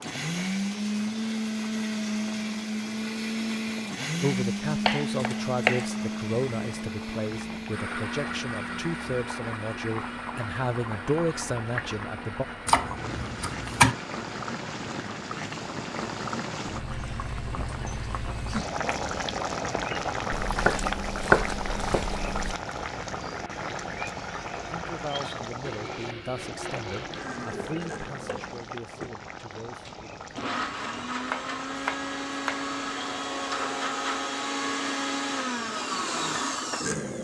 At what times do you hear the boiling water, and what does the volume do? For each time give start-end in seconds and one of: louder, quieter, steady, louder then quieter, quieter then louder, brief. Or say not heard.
0.0-37.2 louder then quieter.